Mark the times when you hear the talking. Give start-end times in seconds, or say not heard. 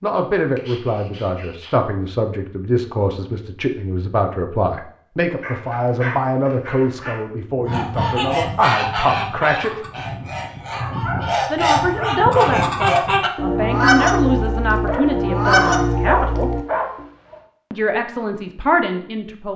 0.0-9.8, 11.5-16.6, 17.7-19.5.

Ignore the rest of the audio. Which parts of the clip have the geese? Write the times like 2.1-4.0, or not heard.
7.5-17.1.